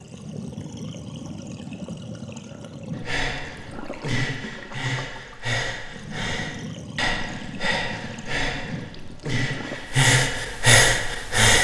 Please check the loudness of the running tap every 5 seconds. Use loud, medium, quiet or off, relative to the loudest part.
loud, loud, off.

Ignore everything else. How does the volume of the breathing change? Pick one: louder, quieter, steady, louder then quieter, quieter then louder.
louder.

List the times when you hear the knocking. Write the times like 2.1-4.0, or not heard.
not heard.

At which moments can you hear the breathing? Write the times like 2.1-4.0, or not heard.
2.9-11.5.